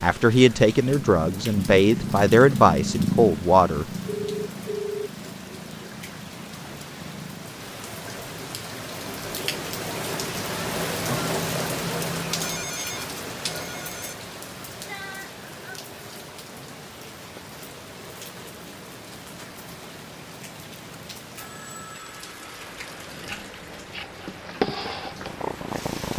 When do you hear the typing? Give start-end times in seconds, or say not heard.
not heard.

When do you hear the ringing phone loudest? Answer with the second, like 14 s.
5 s.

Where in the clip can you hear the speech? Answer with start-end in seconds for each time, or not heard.
0.0-3.9.